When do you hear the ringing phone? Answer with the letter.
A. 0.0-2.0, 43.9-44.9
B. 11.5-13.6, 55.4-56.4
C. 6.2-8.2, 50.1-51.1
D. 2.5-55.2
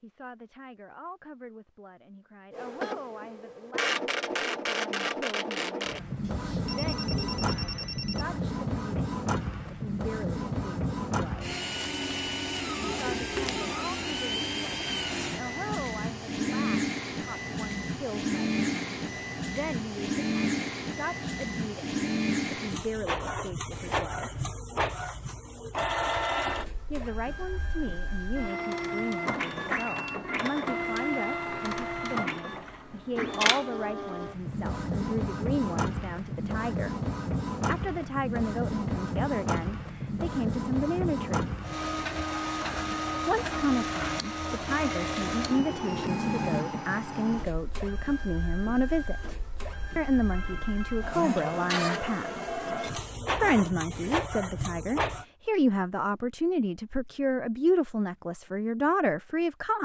C.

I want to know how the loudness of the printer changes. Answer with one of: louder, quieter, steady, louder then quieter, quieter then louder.
steady.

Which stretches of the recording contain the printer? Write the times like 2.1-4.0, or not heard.
2.5-55.2.